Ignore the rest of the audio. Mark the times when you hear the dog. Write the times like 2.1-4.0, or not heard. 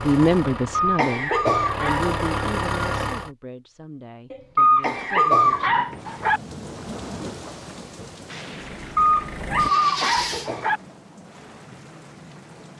0.7-2.1, 4.5-6.4, 8.9-10.8.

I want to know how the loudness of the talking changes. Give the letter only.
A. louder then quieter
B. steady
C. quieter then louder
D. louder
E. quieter
E.